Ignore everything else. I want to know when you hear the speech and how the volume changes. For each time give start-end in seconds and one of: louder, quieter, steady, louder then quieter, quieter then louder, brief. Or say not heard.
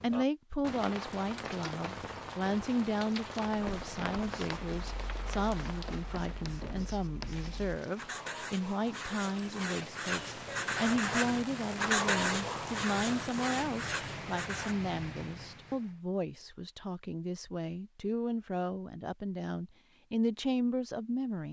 0.0-21.4 steady.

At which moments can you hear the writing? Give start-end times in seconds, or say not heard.
3.5-14.8.